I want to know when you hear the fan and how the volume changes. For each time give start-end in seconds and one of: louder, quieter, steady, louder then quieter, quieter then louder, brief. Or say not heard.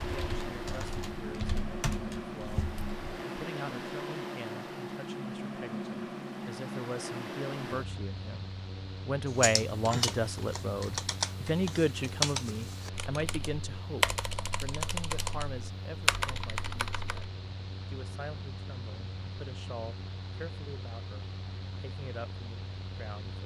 0.0-23.4 quieter.